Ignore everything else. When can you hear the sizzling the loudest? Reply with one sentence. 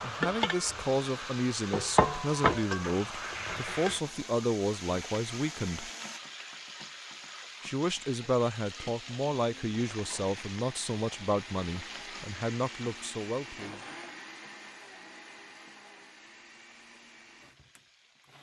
The volume of the sizzling peaks at 2 seconds.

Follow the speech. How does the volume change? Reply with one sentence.
The loudness of the speech stays about the same.